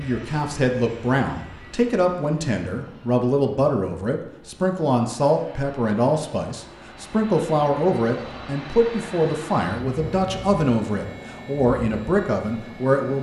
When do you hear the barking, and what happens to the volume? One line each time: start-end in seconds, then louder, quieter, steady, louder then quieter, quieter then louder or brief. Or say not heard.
not heard.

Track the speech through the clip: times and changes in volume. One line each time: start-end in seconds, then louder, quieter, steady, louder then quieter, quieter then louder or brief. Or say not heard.
0.0-13.1 steady.